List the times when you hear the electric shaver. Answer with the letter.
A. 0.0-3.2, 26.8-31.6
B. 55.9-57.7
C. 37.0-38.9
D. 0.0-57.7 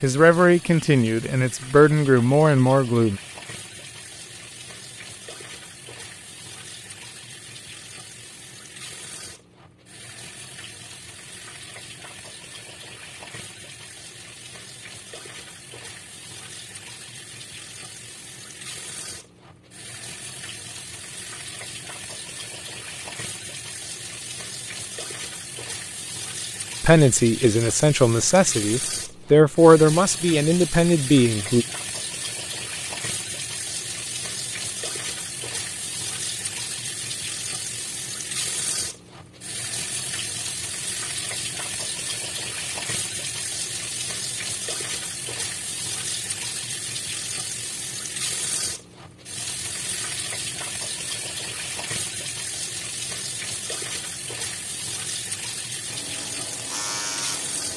B.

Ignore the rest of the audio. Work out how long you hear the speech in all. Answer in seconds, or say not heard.
8 s.